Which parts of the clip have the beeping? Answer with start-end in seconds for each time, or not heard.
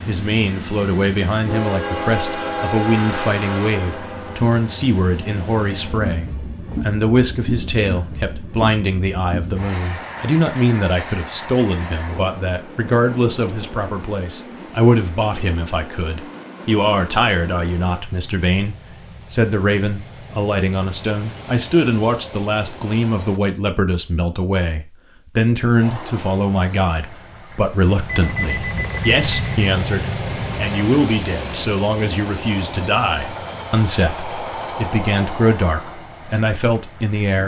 28.1-29.6.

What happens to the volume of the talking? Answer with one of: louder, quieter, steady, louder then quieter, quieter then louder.
steady.